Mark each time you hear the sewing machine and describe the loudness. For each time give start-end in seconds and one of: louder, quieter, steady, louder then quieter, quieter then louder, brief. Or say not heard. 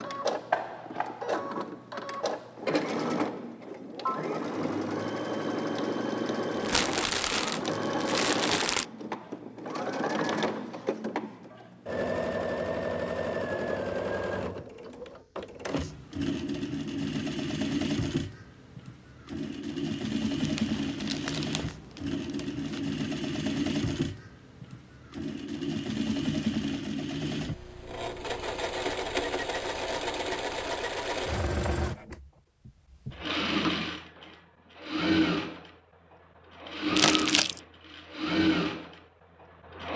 0.0-39.9 steady.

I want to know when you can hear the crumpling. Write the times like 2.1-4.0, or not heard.
6.6-8.8, 20.4-22.8, 37.0-37.6.